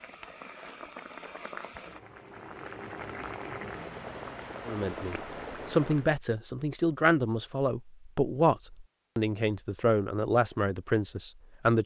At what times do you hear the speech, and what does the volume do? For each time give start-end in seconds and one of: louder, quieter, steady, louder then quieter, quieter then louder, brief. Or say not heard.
4.7-11.8 steady.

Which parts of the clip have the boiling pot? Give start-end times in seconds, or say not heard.
0.0-6.1.